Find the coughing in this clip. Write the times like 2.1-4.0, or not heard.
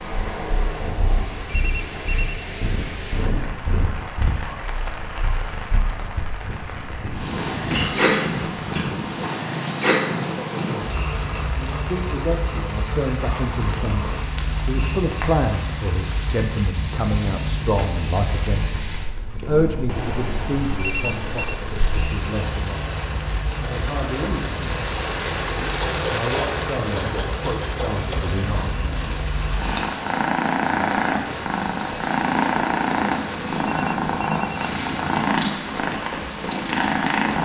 7.7-8.9, 25.8-28.2.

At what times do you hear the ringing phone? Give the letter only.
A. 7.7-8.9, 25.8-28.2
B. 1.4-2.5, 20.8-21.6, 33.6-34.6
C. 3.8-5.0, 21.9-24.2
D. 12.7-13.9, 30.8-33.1
B.